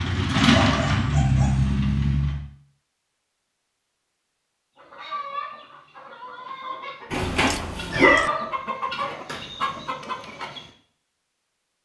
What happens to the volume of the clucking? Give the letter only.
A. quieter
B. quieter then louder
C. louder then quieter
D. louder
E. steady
B.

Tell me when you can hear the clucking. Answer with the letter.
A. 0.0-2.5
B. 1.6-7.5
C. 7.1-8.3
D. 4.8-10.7
D.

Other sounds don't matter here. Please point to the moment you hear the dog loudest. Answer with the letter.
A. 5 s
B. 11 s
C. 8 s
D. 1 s
C.